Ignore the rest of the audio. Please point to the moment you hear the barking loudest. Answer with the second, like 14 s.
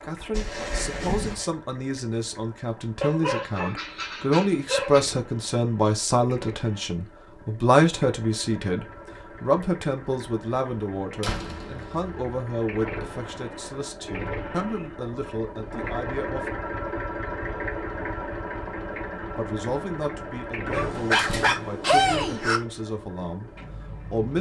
22 s.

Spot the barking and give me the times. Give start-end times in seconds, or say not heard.
3.0-5.0, 20.7-22.6.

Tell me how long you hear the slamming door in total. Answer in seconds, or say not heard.
3 s.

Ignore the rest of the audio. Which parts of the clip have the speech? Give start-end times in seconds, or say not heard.
0.0-16.5, 19.4-24.3.